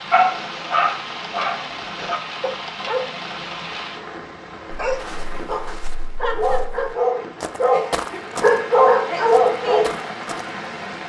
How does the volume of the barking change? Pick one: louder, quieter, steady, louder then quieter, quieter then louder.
quieter then louder.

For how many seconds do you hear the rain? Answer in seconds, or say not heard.
11 s.